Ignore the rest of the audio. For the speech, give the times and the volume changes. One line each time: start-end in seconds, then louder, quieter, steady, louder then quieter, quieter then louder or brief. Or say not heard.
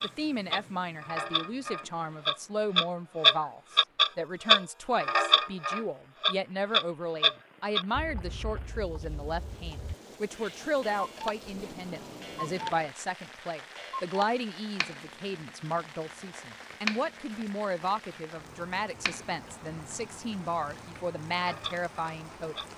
0.0-22.6 steady.